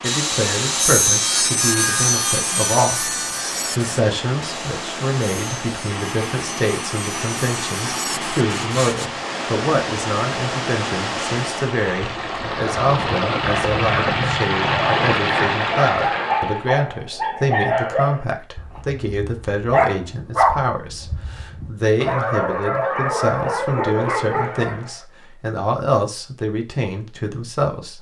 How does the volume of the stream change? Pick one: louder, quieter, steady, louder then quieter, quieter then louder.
louder.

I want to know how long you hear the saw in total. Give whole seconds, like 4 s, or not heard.
9 s.